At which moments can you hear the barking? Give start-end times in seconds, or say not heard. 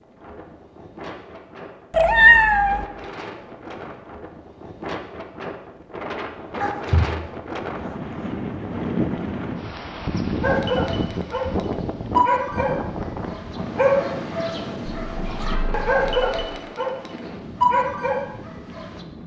10.4-19.0.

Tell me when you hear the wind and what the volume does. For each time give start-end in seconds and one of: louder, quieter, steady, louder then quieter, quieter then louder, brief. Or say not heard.
0.0-19.2 louder then quieter.